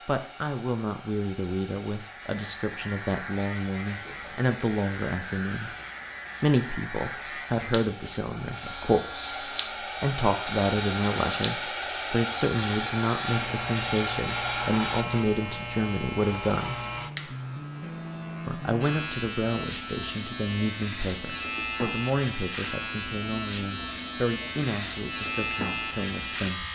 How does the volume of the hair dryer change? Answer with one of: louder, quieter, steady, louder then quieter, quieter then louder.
louder.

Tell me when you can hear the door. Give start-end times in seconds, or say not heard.
not heard.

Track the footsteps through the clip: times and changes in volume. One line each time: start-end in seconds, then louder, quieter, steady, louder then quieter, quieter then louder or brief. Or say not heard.
not heard.